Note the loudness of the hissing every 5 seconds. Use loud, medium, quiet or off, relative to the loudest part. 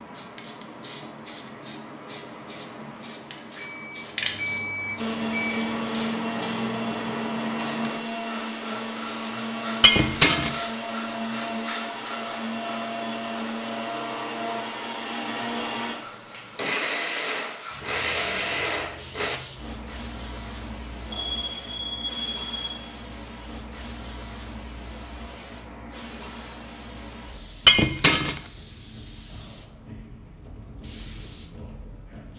loud, loud, loud, medium, medium, medium, medium.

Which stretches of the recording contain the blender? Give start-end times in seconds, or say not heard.
5.0-19.4.